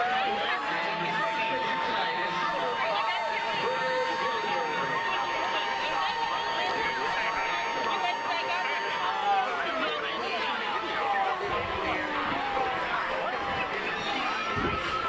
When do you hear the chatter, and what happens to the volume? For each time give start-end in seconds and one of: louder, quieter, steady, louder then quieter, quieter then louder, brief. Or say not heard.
0.0-15.0 steady.